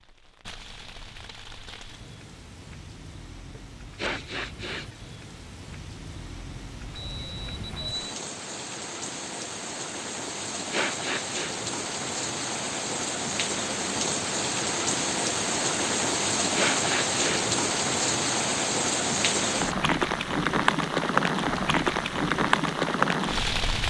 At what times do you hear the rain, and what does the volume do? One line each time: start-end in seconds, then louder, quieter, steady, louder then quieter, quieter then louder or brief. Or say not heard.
0.0-23.8 louder.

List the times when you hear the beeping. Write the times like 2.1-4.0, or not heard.
7.0-8.2.